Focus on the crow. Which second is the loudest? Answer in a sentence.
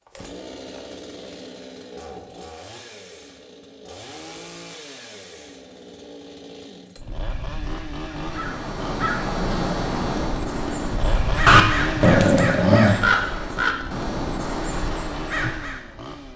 The loudest moment of the crow is at 13 seconds.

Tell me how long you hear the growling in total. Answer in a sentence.
You can hear the growling for 2 seconds altogether.